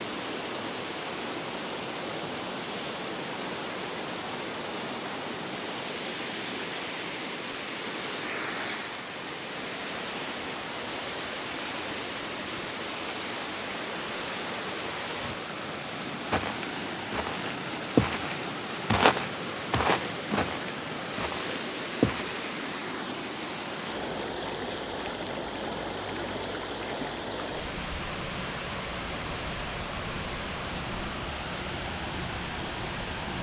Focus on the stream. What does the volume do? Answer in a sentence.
The volume of the stream stays about the same.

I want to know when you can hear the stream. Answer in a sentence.
The stream can be heard from 0.0 to 33.3 s.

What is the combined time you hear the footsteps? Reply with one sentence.
The footsteps can be heard for 6 seconds in total.